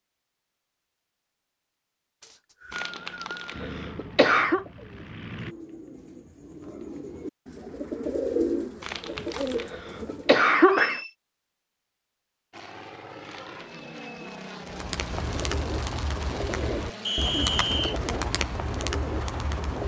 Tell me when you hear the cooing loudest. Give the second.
8 s.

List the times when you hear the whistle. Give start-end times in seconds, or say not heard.
2.2-3.5, 10.6-11.2, 17.1-18.0.